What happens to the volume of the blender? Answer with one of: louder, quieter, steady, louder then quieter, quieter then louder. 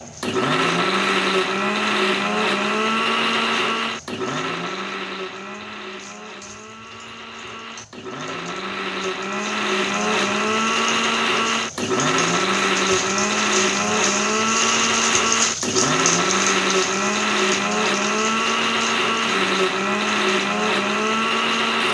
quieter then louder.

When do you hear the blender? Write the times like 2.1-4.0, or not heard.
0.0-21.8.